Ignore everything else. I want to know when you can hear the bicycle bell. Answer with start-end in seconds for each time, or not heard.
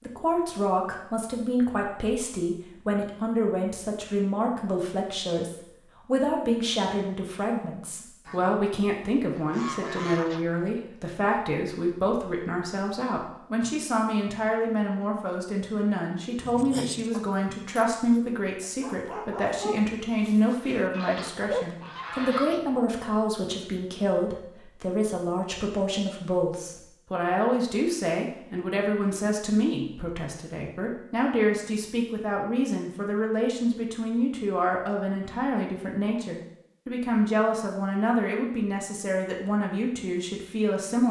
not heard.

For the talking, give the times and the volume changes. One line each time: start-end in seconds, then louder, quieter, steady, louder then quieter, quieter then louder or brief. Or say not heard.
0.0-41.0 steady.